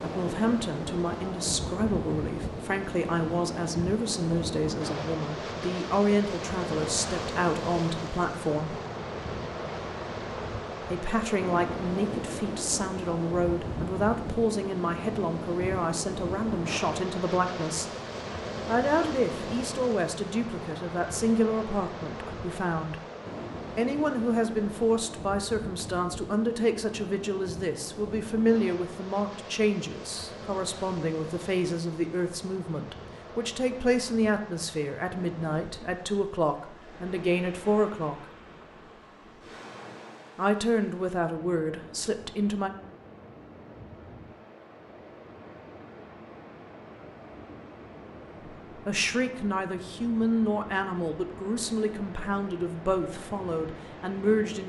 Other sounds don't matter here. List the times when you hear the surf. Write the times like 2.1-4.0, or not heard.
0.0-54.6.